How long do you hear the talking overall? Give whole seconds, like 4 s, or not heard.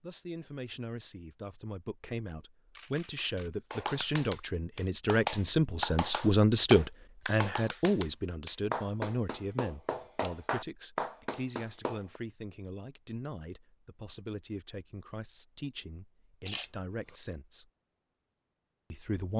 18 s.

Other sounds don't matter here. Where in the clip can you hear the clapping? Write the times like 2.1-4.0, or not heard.
3.7-12.2.